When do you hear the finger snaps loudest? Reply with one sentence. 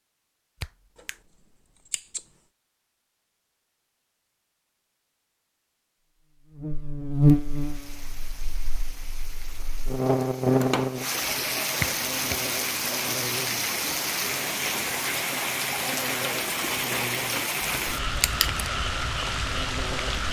The volume of the finger snaps peaks at 12 seconds.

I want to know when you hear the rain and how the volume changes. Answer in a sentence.
You can hear the rain from 7.3 to 20.2 s, getting louder.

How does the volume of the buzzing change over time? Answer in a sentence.
The volume of the buzzing goes down.